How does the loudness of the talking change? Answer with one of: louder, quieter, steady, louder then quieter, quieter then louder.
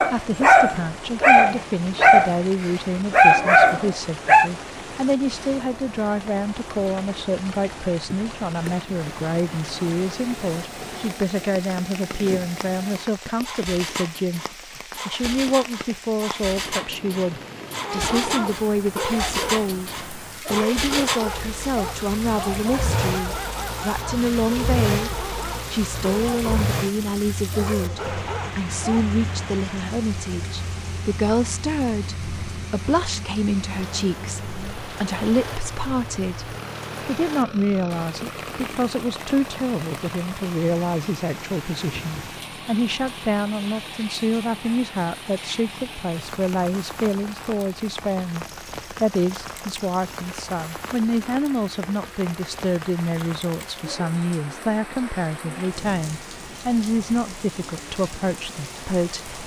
steady.